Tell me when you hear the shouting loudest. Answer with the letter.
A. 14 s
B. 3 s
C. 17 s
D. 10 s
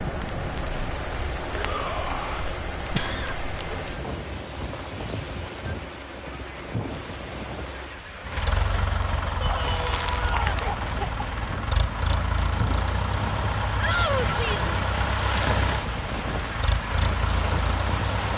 A.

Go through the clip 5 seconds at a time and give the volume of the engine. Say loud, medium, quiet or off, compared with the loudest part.
quiet, medium, loud, loud.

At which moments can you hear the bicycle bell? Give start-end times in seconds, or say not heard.
not heard.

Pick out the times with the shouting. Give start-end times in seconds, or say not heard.
1.5-2.5, 9.4-10.6, 13.8-14.8.